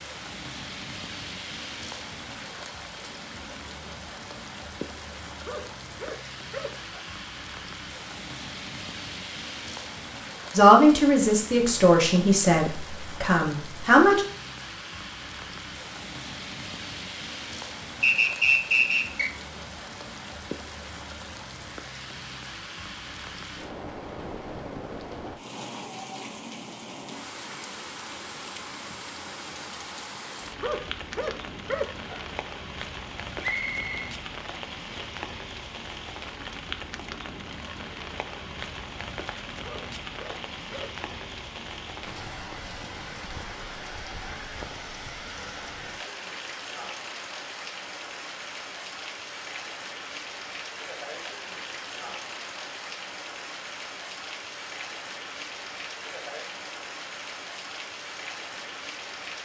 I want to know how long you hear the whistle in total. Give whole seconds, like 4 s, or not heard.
2 s.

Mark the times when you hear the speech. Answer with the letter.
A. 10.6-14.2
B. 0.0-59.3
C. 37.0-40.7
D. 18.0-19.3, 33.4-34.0
A.